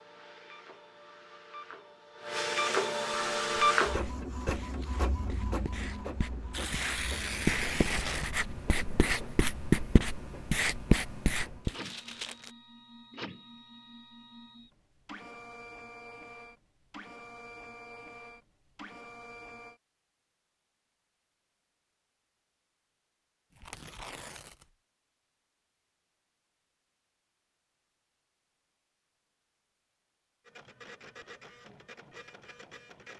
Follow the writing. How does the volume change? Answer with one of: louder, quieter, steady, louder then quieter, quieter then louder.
louder.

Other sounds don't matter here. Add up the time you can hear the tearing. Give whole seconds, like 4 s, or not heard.
4 s.